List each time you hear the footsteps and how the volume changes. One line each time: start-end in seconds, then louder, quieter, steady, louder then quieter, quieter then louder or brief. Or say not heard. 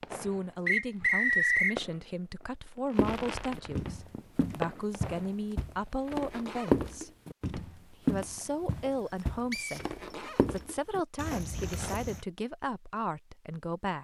3.0-12.2 louder then quieter.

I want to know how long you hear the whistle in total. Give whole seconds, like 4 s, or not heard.
2 s.